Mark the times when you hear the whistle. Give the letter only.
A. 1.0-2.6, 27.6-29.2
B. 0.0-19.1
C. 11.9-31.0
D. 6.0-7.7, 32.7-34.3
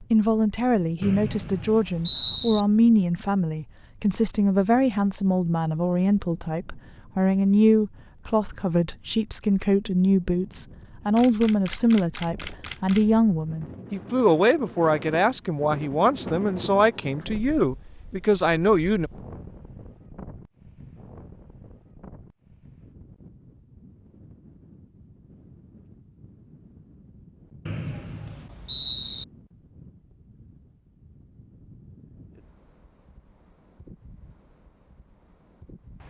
A.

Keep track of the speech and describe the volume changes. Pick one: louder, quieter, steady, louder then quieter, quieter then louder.
steady.